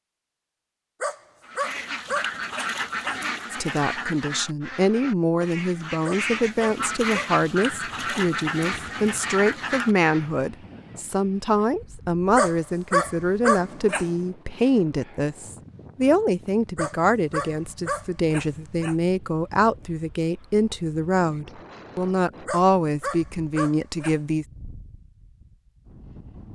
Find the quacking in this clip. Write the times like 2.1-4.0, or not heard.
1.4-10.3.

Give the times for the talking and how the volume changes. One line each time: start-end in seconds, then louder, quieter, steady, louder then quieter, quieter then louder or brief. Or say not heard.
3.5-24.4 steady.